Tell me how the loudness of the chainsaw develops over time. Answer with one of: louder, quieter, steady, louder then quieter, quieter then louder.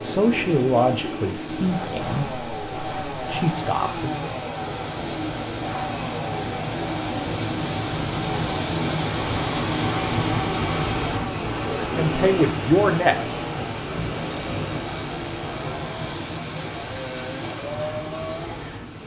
steady.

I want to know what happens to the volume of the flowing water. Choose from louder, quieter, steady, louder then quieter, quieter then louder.
louder then quieter.